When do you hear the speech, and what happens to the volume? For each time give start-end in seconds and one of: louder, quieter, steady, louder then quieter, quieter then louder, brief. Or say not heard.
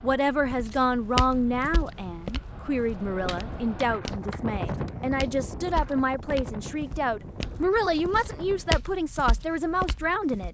0.0-10.4 steady.